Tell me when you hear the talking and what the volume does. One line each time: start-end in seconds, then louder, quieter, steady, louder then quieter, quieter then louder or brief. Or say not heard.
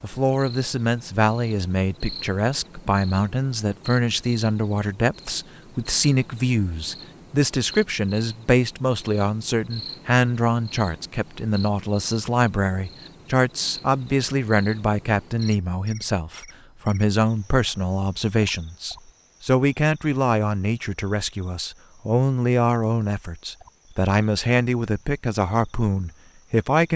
0.0-26.9 steady.